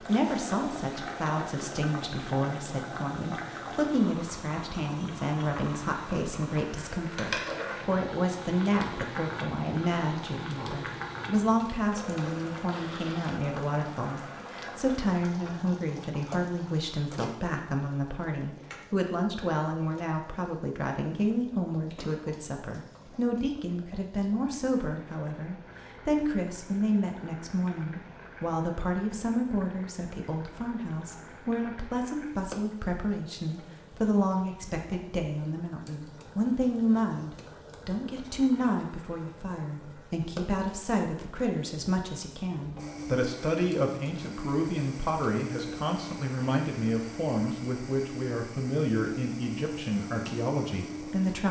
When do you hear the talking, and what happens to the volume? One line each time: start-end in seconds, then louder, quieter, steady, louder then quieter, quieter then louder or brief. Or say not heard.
0.0-51.4 steady.